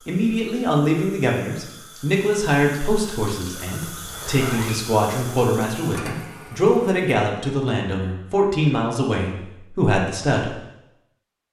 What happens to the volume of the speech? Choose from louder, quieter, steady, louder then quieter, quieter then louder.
steady.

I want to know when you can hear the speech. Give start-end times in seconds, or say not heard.
0.1-10.6.